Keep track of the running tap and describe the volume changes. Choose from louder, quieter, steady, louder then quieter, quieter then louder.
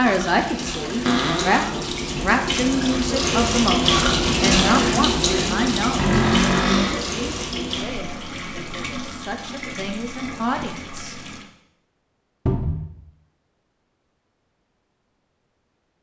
louder then quieter.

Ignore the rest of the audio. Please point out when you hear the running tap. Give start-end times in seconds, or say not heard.
0.0-11.4.